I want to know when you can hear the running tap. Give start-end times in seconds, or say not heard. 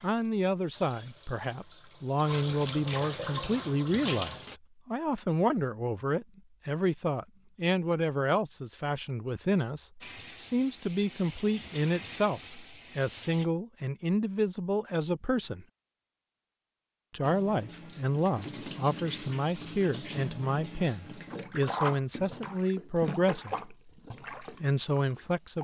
0.0-4.6, 10.0-13.4, 17.2-25.5.